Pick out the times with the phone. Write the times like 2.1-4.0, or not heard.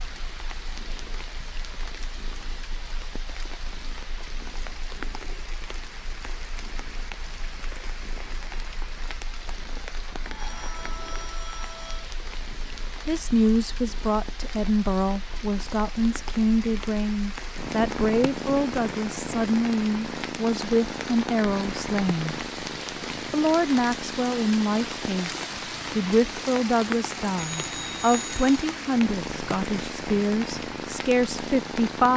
10.2-12.1, 27.5-28.5.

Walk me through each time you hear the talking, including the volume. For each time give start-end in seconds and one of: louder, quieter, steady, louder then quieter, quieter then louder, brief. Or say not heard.
13.1-22.4 steady
23.3-32.1 steady.